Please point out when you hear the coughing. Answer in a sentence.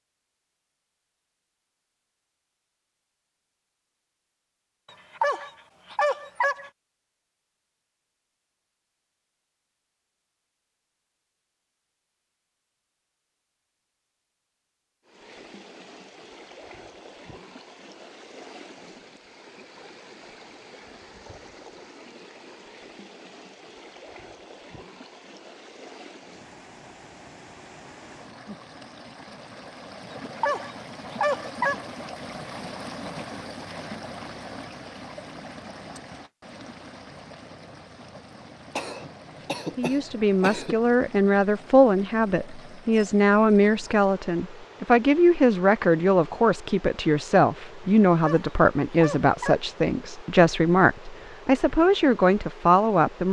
You can hear the coughing from 38.8 to 40.8 s.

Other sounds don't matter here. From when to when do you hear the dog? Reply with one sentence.
You can hear the dog from 5.2 to 6.7 s, from 30.1 to 31.8 s and from 48.1 to 49.5 s.